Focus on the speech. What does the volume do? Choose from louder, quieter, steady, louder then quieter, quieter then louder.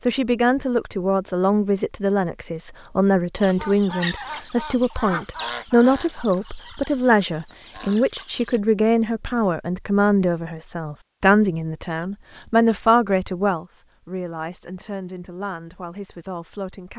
quieter.